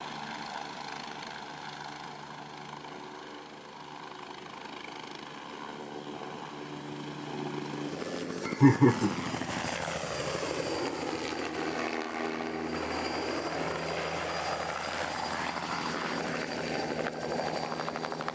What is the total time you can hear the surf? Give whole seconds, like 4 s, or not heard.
not heard.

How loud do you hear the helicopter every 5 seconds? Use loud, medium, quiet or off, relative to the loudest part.
medium, loud, loud, loud.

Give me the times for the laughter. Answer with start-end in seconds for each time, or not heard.
8.4-9.1.